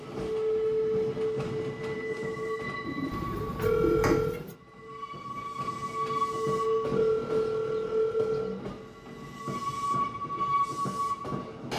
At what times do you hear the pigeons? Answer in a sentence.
The pigeons can be heard from 2.8 to 4.5 s.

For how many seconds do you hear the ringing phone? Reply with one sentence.
The ringing phone can be heard for 3 seconds in total.